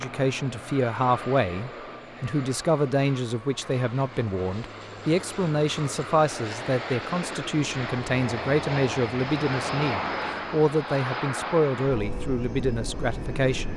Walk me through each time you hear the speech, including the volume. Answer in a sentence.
You can hear the speech from 0.0 to 13.7 s, at a steady volume.